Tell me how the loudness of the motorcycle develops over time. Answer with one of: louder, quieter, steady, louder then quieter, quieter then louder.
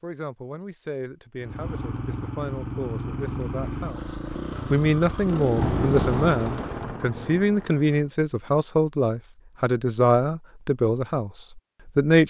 steady.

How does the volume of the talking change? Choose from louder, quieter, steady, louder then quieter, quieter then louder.
louder.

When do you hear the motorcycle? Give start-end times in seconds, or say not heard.
1.4-7.0.